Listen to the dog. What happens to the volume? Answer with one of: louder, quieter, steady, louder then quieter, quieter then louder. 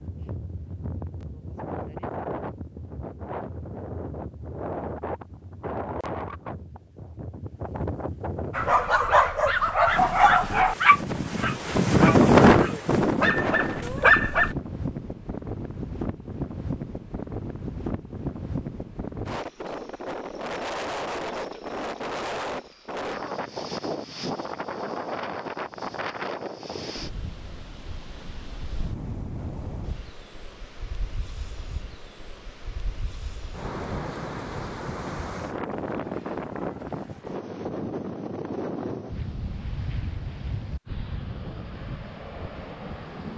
quieter then louder.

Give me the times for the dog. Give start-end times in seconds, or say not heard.
8.6-14.6.